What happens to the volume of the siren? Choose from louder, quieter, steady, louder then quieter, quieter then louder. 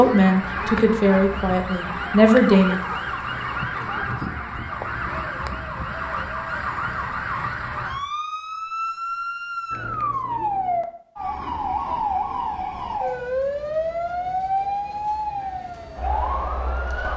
steady.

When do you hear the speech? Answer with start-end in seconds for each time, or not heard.
0.0-2.8.